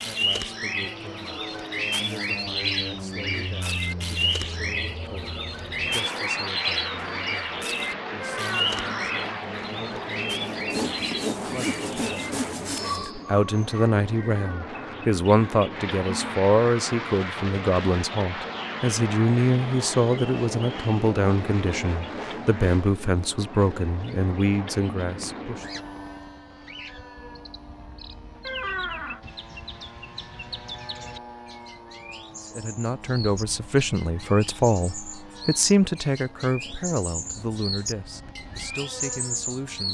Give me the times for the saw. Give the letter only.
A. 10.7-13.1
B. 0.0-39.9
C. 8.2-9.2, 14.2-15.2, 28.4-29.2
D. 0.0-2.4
A.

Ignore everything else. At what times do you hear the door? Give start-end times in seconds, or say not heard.
8.2-9.2, 14.2-15.2, 28.4-29.2.